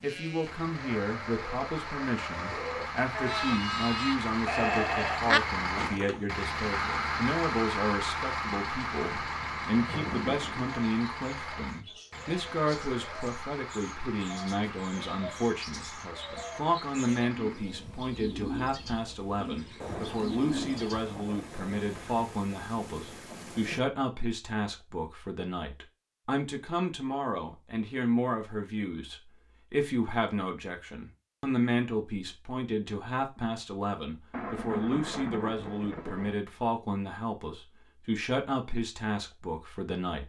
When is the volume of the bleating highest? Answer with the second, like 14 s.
5 s.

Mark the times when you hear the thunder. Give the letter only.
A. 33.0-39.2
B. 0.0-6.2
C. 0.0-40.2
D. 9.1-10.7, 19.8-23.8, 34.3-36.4
D.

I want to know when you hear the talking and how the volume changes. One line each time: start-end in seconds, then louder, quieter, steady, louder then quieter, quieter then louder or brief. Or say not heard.
0.0-40.2 steady.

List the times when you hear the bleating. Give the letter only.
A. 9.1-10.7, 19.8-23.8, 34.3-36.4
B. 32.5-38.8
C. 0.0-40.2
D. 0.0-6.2
D.